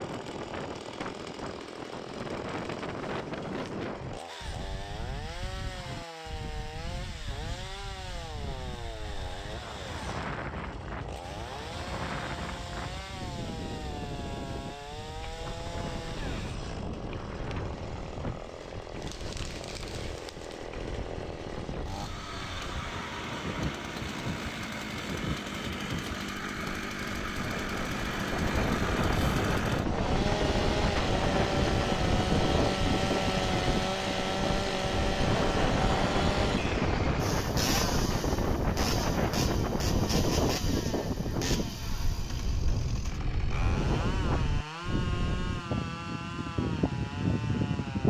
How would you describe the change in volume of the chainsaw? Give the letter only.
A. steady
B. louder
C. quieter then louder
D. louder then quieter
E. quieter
D.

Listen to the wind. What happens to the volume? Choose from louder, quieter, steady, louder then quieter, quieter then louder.
louder.